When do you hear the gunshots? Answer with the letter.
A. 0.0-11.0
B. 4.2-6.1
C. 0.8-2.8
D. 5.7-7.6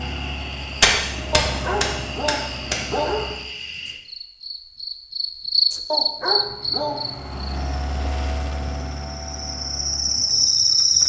C.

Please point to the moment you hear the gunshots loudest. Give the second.
1 s.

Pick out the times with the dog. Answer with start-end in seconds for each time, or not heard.
1.3-3.4, 5.9-7.0.